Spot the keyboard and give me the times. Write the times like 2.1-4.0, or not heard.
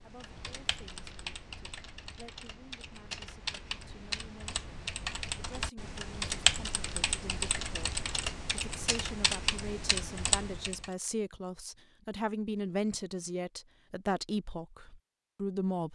0.0-10.9.